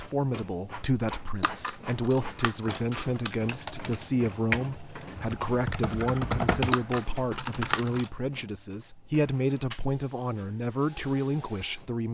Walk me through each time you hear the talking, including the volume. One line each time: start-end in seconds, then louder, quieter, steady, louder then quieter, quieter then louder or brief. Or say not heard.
0.0-12.0 steady.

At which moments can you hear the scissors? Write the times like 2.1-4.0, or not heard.
1.4-3.4, 6.7-8.1.